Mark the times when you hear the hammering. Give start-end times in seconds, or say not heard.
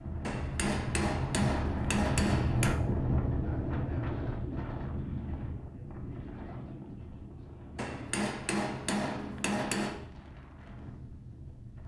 0.2-2.8, 7.8-10.1.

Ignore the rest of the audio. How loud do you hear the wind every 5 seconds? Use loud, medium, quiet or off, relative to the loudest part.
loud, medium, quiet.